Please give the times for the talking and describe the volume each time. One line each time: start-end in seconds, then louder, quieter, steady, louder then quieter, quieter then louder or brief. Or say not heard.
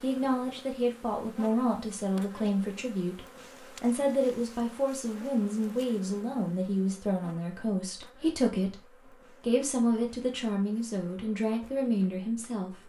0.0-12.8 steady.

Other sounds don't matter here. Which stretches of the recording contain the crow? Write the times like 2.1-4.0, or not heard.
not heard.